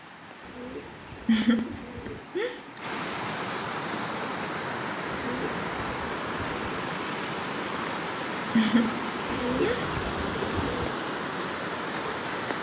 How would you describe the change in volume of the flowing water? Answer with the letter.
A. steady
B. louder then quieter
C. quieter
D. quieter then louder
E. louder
E.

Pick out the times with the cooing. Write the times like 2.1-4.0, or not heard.
0.4-2.4, 5.1-6.8, 9.2-10.9.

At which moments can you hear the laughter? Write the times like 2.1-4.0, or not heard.
1.2-2.9, 8.6-9.9.